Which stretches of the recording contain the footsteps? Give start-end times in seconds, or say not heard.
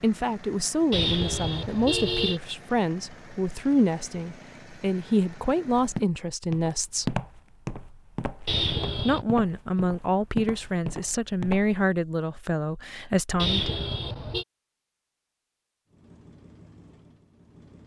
5.8-11.8.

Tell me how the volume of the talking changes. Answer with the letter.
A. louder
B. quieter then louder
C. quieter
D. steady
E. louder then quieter
D.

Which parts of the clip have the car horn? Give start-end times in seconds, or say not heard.
0.9-2.4, 8.4-9.2, 13.3-14.4.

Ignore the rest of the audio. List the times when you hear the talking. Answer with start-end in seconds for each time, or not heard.
0.0-7.2, 8.9-13.8.